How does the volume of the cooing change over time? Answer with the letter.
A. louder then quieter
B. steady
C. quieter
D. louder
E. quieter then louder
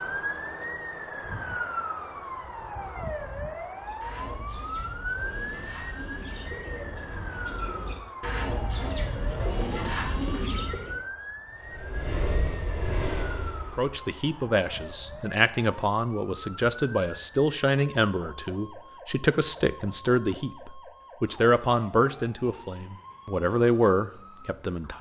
D.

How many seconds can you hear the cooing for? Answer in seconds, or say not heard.
7 s.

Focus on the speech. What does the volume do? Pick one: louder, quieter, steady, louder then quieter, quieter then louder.
steady.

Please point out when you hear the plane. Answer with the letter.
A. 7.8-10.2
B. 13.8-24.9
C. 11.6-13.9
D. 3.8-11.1
C.